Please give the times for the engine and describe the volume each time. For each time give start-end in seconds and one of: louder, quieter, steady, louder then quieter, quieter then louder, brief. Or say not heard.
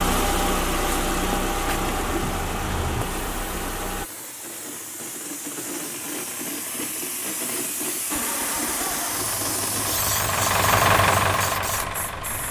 0.0-4.1 quieter
8.1-12.4 louder then quieter.